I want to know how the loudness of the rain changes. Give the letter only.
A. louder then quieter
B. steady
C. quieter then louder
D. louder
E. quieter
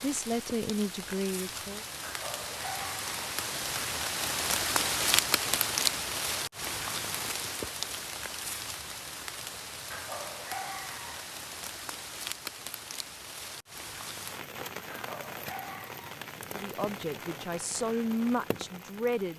A.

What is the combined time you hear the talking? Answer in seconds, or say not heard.
5 s.